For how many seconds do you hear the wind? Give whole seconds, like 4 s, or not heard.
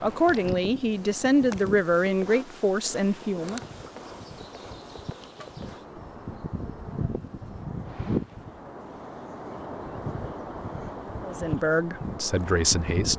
13 s.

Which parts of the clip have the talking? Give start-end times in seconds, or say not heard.
0.0-3.6, 11.2-13.1.